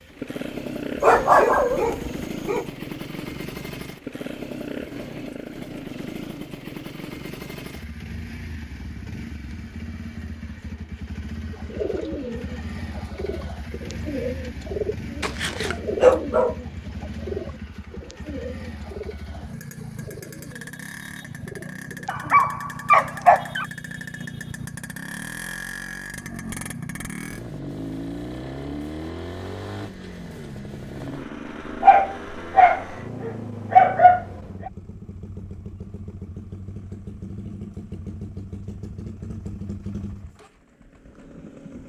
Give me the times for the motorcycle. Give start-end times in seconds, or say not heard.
0.0-41.8.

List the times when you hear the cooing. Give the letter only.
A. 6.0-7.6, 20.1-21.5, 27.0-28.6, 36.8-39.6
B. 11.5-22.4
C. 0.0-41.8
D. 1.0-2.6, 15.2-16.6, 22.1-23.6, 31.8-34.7
B.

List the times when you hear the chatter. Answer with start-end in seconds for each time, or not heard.
not heard.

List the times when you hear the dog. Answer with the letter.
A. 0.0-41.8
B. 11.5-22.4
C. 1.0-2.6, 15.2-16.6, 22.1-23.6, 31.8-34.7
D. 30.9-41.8
C.